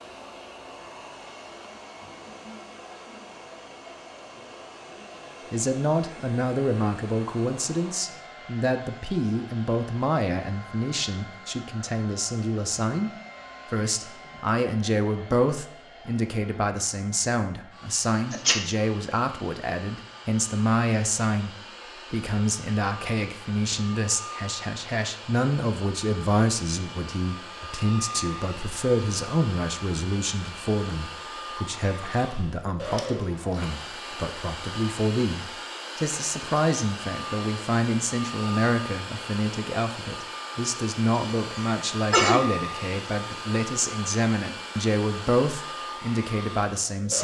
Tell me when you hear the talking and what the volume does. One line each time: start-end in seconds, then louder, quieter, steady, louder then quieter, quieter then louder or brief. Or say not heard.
5.5-47.1 steady.